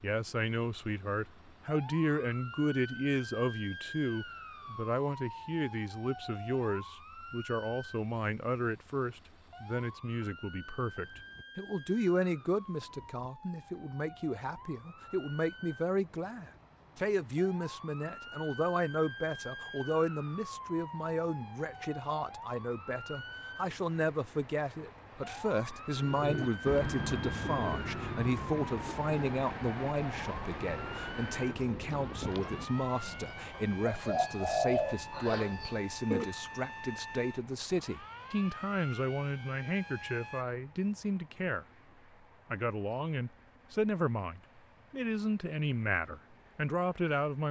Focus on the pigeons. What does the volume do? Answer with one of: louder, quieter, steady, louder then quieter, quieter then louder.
quieter then louder.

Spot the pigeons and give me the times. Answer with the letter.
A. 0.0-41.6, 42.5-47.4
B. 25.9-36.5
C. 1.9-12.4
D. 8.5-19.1
B.